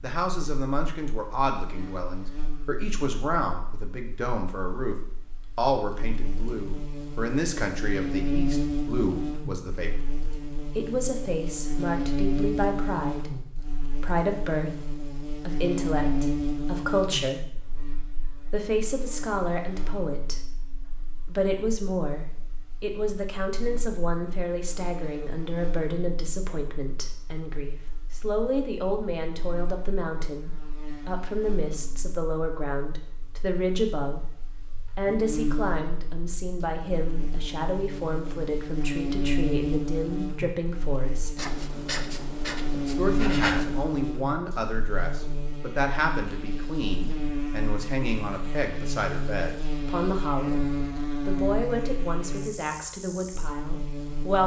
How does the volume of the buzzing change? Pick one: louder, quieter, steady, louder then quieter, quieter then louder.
quieter then louder.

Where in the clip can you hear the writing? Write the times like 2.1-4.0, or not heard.
41.4-43.9.